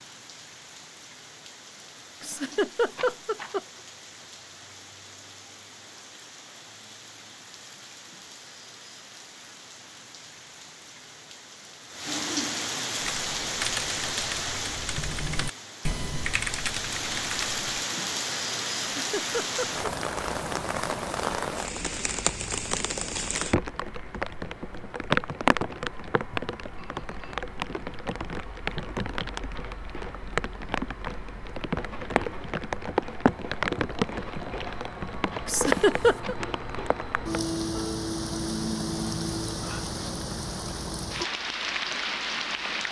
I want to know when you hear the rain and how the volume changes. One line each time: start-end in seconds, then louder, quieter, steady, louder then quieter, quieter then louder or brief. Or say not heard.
0.0-42.8 louder.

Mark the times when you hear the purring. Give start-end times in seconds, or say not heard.
not heard.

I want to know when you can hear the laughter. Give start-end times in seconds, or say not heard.
2.2-3.6, 18.9-19.9, 35.5-36.4.